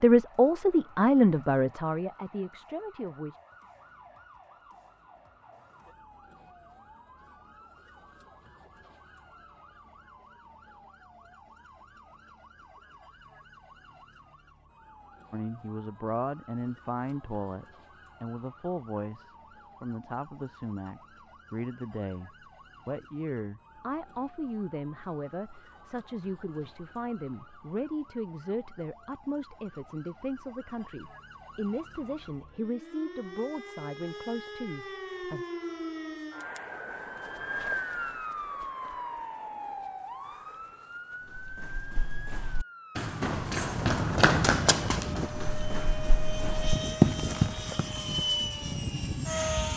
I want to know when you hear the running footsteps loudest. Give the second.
47 s.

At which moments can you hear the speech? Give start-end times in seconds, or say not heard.
0.0-3.4, 15.3-35.5.